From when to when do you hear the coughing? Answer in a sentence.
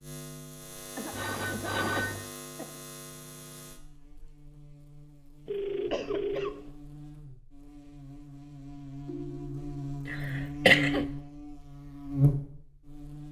The coughing can be heard from 0.9 to 2.8 s, from 5.8 to 6.5 s and from 10.1 to 11.1 s.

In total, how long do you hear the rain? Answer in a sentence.
The rain can't be heard in this clip.